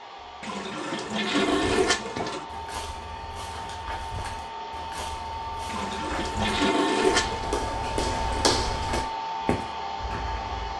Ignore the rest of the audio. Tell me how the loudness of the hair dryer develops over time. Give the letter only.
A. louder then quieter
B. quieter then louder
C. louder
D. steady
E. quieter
C.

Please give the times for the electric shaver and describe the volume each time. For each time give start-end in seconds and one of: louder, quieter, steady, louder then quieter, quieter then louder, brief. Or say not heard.
not heard.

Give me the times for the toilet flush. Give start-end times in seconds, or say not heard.
0.4-2.5, 5.7-7.5.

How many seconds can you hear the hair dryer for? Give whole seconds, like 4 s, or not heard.
11 s.